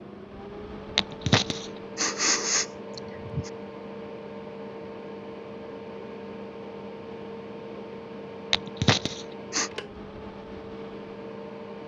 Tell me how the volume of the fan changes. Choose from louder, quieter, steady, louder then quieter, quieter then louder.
steady.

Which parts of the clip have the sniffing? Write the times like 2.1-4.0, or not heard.
0.9-3.5, 8.5-9.7.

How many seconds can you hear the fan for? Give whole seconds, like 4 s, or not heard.
12 s.